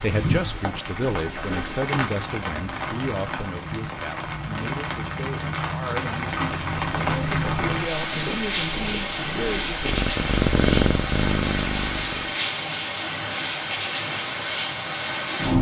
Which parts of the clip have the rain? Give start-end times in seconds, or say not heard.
0.0-15.5.